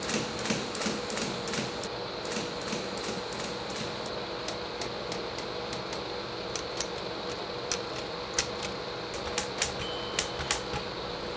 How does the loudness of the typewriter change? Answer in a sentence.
The loudness of the typewriter goes down, then up.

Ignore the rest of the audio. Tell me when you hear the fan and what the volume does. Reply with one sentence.
The fan can be heard from 0.0 to 11.3 s, at a steady volume.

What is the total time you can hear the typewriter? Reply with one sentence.
You can hear the typewriter for 11 seconds altogether.